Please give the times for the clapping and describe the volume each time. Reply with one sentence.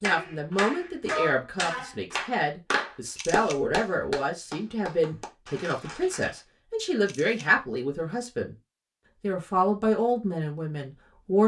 You can hear the clapping from 0.0 to 6.4 s, getting quieter.